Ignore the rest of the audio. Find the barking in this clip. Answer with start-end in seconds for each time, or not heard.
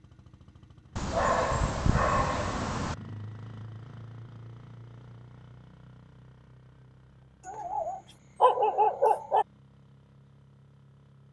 0.9-3.0, 7.5-9.4.